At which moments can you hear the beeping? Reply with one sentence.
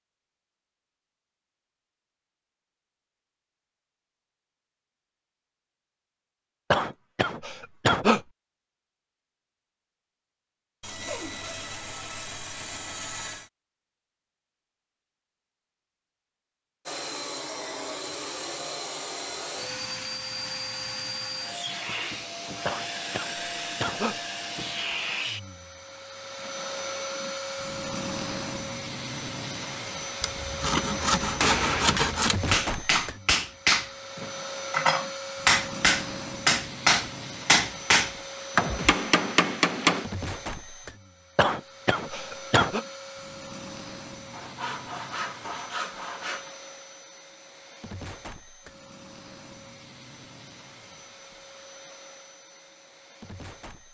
You can't hear the beeping here.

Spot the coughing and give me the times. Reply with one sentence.
The coughing can be heard from 6.7 to 8.2 s, from 22.6 to 24.2 s and from 41.4 to 42.9 s.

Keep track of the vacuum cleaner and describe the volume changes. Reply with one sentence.
The volume of the vacuum cleaner goes down.